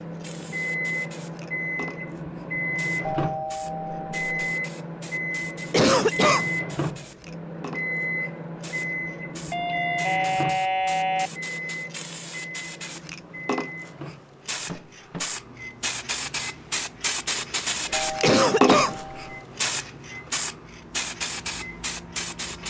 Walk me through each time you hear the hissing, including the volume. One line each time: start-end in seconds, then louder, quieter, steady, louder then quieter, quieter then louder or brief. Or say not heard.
0.0-22.6 louder.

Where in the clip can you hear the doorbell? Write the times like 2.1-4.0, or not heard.
3.0-4.5, 9.5-11.3, 17.9-19.4.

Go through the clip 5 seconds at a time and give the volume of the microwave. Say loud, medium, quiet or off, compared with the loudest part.
loud, loud, medium, quiet, quiet.